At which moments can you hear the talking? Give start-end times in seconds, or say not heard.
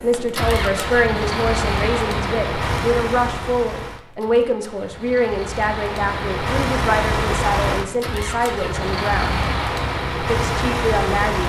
0.0-9.4, 10.2-11.4.